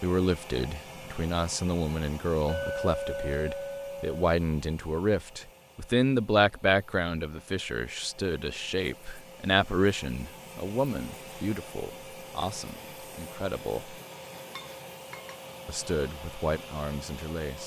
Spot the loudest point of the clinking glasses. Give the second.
3 s.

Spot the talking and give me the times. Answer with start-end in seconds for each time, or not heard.
0.0-13.9, 15.7-17.6.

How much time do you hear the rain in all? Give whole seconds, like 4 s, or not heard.
not heard.